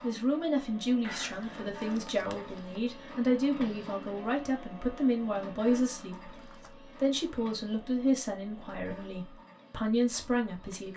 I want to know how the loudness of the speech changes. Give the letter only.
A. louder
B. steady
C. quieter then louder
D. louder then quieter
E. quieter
B.